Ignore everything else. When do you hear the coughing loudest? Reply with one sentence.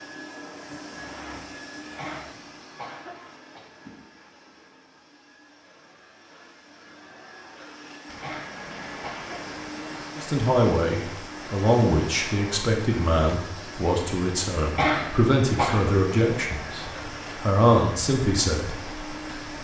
The loudest moment of the coughing is at 15 seconds.